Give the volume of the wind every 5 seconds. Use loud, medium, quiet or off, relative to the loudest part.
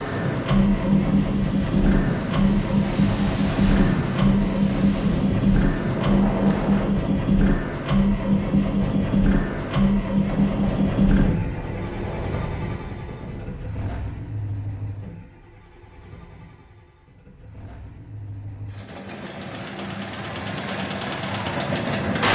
loud, loud, medium, off, off.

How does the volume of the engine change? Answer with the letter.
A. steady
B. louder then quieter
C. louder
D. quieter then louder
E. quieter
D.